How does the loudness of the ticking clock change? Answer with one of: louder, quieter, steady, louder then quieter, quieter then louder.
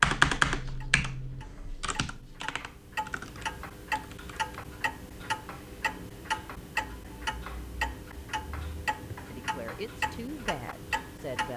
louder.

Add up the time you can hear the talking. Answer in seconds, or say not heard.
2 s.